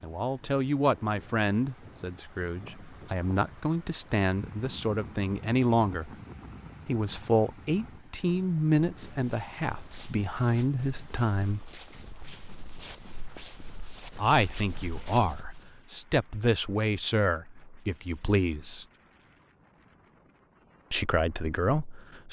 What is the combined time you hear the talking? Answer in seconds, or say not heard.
17 s.